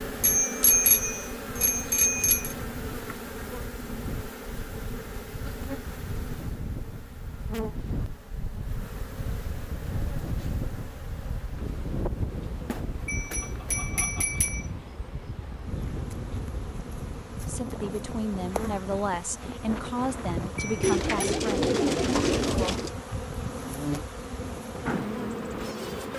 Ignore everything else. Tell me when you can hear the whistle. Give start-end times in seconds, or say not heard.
not heard.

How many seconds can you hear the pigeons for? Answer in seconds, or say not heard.
2 s.